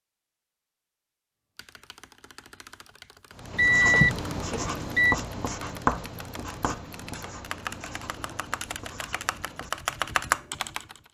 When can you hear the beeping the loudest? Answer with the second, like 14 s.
4 s.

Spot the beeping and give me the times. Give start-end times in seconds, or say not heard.
3.5-5.2.